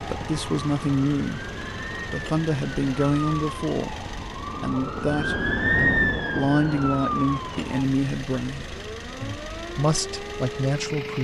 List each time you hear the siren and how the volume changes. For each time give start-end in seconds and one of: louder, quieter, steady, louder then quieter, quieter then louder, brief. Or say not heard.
0.0-10.8 louder then quieter.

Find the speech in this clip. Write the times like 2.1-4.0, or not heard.
0.1-4.0, 4.6-11.1.